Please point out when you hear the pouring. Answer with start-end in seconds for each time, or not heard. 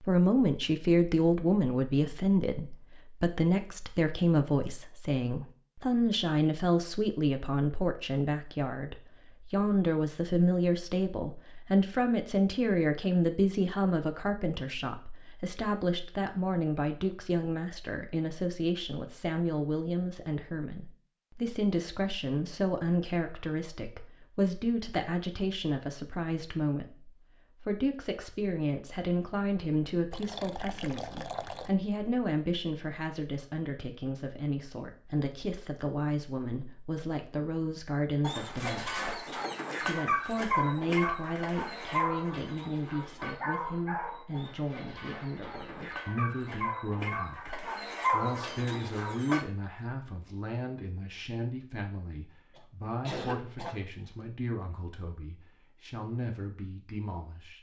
30.1-31.8.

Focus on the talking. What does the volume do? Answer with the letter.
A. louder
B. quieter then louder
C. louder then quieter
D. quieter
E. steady
D.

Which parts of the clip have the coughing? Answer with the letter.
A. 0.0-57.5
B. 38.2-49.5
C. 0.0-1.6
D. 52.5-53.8
D.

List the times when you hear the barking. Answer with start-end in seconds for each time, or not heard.
38.2-49.5.